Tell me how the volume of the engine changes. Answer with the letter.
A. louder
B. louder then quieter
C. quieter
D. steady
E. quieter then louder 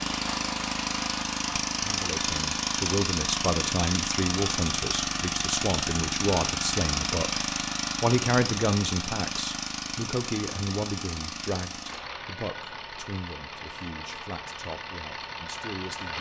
C.